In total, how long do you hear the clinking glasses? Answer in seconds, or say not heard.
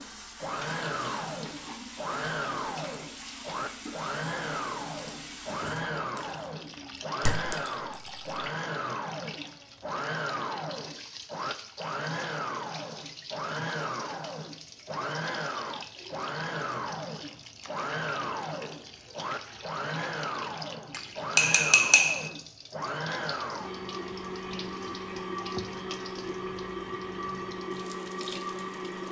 2 s.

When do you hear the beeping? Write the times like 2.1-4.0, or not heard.
not heard.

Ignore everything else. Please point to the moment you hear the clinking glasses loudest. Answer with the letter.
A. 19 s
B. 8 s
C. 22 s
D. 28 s
C.